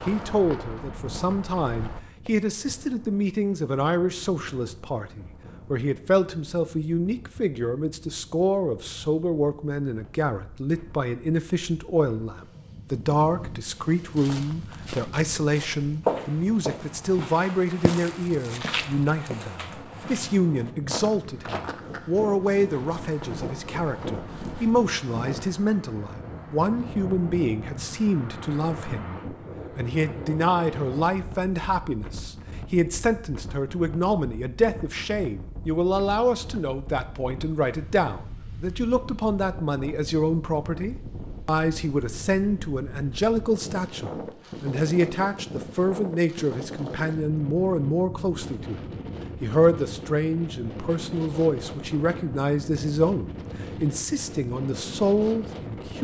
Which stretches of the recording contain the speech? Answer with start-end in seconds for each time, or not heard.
0.1-55.9.